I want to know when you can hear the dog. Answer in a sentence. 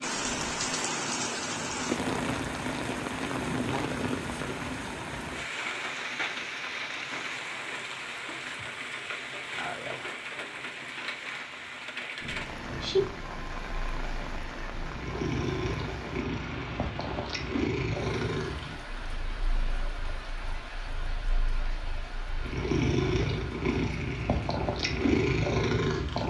The dog can't be heard in this clip.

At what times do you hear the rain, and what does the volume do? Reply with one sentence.
You can hear the rain from 0.0 to 26.2 s, getting quieter.